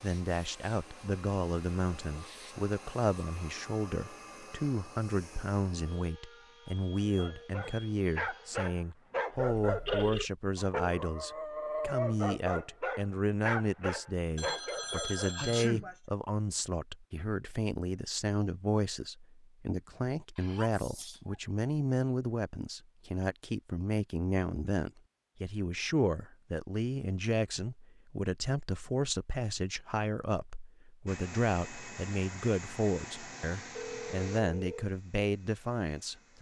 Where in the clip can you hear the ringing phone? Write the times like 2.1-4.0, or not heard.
9.6-10.3, 14.3-15.7, 33.6-34.9.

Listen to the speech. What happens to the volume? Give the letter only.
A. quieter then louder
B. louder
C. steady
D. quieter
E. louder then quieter
C.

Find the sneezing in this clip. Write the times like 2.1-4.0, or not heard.
14.7-16.0, 20.4-21.4.